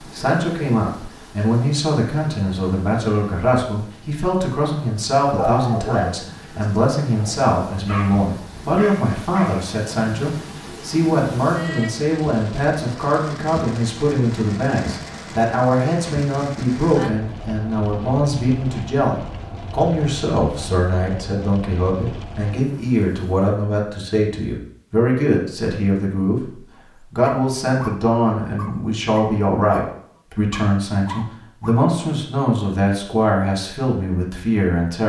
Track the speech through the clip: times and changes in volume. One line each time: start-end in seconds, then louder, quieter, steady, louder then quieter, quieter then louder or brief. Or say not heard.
0.0-35.0 steady.